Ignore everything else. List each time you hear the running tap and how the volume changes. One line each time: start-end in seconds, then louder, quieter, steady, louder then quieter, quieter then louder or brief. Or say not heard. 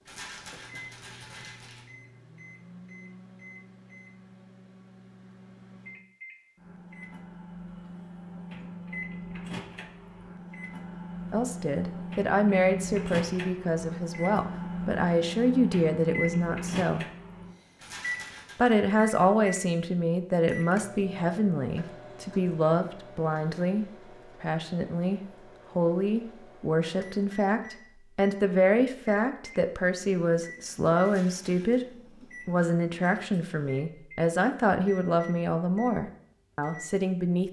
not heard.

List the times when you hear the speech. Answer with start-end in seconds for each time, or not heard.
11.3-17.1, 18.6-37.4.